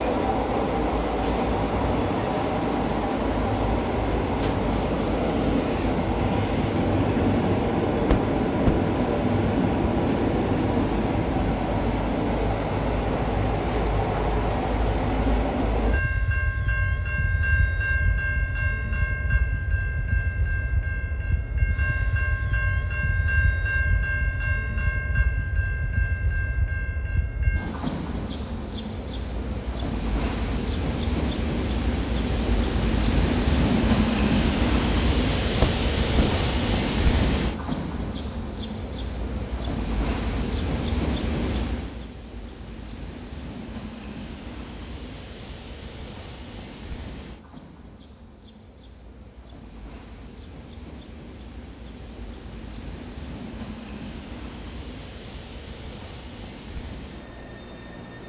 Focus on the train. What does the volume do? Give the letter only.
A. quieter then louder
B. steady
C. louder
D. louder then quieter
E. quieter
E.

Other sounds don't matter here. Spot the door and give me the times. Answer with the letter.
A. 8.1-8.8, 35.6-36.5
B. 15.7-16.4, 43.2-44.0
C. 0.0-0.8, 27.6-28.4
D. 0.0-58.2
A.